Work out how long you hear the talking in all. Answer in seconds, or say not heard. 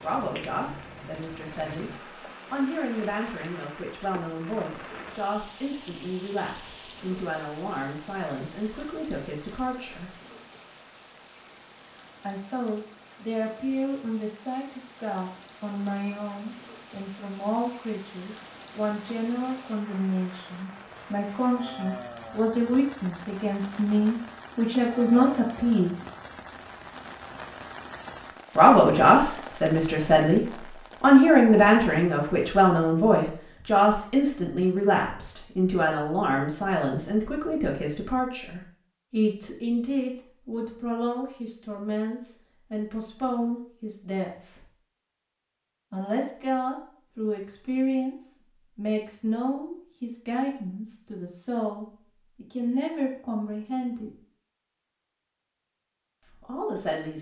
49 s.